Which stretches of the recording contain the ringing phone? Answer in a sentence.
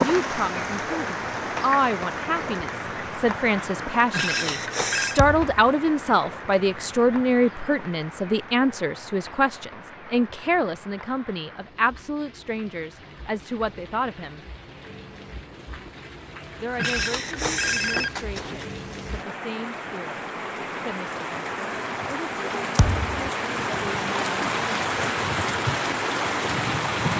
You can hear the ringing phone from 4.1 to 5.2 s and from 16.8 to 18.6 s.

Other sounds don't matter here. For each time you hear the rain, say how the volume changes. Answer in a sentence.
The rain can be heard from 0.0 to 27.1 s, getting quieter then louder.